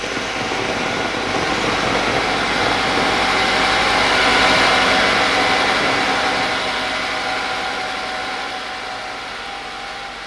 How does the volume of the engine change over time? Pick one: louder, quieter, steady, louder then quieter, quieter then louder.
louder then quieter.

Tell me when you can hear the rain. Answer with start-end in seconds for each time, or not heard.
0.0-6.6.